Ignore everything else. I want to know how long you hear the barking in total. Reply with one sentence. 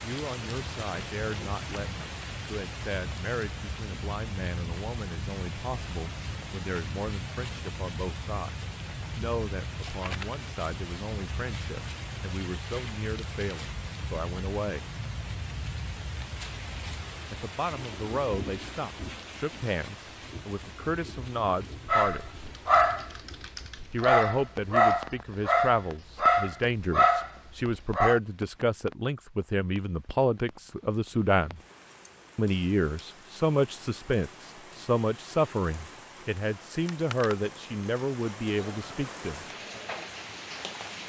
The barking can be heard for 6 seconds in total.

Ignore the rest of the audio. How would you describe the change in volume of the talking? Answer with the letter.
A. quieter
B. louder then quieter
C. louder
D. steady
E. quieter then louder
C.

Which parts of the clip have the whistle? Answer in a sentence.
The whistle can't be heard in this clip.